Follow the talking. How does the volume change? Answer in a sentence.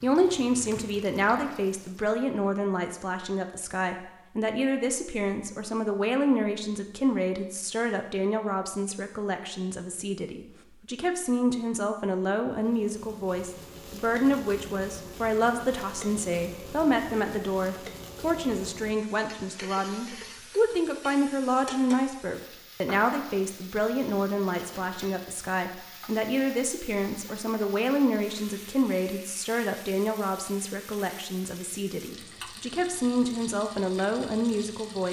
The loudness of the talking stays about the same.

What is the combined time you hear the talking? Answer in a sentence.
You can hear the talking for 35 seconds altogether.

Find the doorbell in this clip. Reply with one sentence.
The doorbell can't be heard in this clip.